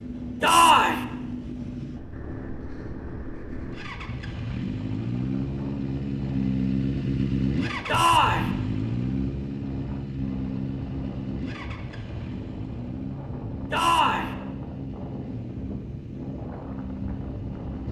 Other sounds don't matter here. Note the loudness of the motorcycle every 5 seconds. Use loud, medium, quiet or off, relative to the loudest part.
medium, loud, medium, medium.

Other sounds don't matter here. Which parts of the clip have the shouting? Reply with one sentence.
You can hear the shouting from 0.4 to 1.1 s, from 7.8 to 8.5 s and from 13.7 to 14.3 s.